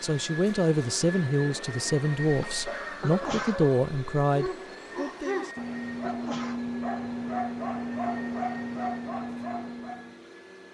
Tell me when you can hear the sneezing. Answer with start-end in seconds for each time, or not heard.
3.0-3.6, 6.0-6.7.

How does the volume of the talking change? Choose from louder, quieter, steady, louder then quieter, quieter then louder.
steady.